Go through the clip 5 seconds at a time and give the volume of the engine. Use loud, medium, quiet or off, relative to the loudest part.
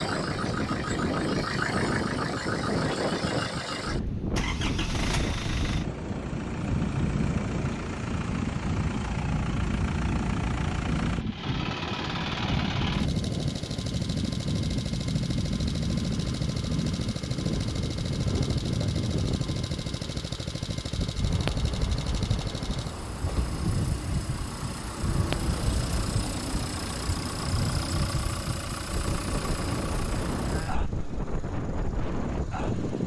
loud, loud, loud, loud, loud, loud, medium.